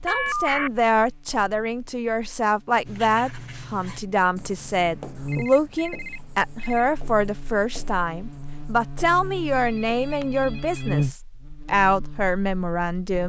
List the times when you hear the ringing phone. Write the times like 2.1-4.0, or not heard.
0.1-0.7, 5.2-6.9, 9.6-11.1.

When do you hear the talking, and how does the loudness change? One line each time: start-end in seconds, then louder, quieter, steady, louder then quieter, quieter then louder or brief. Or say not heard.
0.0-13.2 steady.